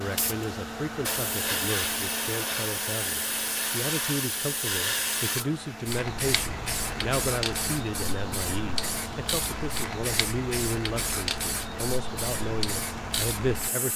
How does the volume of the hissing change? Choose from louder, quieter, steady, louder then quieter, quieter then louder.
steady.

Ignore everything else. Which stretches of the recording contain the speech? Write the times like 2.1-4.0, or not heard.
0.0-13.9.